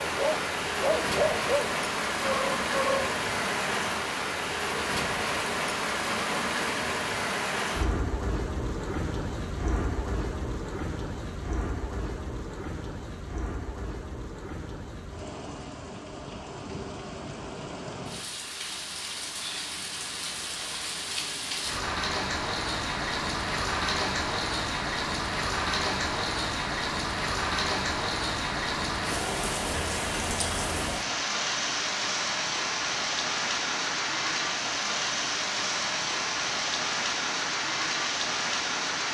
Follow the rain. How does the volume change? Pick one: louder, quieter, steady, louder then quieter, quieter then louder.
quieter then louder.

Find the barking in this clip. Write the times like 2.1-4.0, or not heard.
0.0-3.1.